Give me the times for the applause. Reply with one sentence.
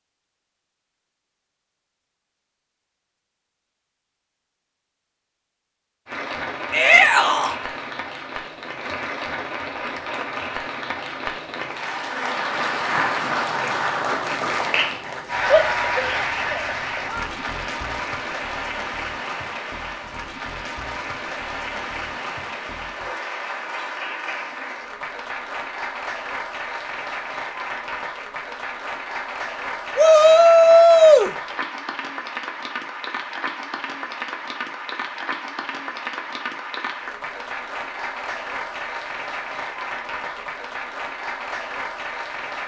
You can hear the applause from 6.0 to 42.6 s.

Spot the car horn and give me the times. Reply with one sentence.
The car horn can't be heard in this clip.